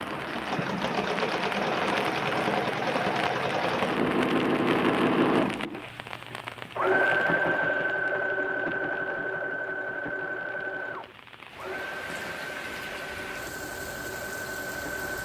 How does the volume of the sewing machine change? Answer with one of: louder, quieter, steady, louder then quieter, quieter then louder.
quieter.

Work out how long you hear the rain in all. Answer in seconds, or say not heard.
15 s.